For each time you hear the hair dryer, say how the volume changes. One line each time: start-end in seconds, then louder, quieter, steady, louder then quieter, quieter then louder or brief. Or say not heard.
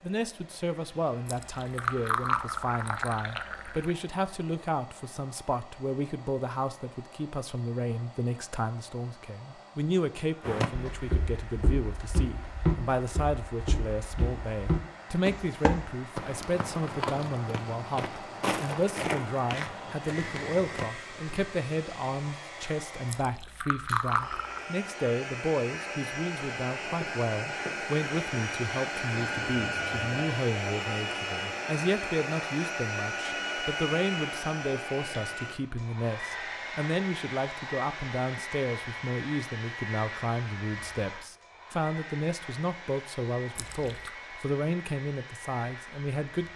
0.0-46.5 louder then quieter.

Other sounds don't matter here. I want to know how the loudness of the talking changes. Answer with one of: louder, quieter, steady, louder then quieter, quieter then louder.
steady.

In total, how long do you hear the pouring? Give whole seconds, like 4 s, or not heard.
5 s.